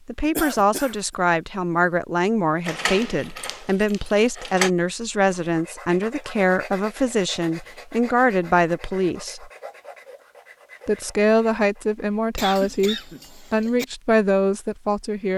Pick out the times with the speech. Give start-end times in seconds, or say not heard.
0.1-9.5, 10.8-15.3.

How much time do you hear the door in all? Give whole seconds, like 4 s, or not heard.
2 s.